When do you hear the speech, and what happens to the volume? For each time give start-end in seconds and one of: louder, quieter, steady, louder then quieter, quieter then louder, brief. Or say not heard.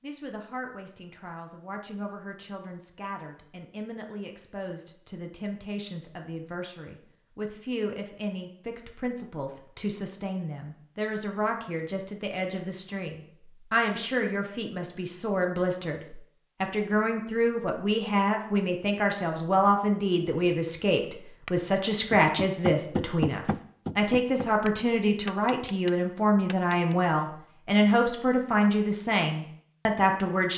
0.0-30.5 louder.